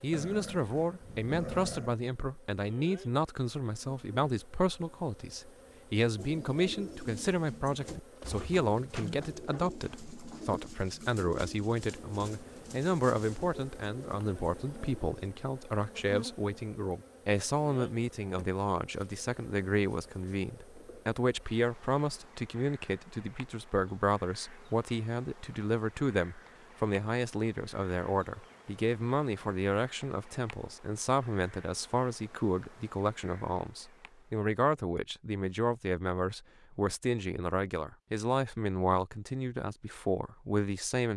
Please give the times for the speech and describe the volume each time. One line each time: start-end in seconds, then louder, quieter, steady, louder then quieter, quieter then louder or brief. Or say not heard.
0.0-41.1 steady.